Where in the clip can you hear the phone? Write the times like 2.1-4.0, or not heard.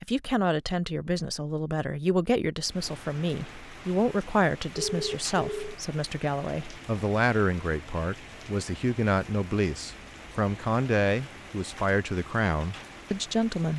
4.8-5.8.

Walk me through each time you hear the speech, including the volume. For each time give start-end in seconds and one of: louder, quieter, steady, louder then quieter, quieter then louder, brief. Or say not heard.
0.0-13.7 steady.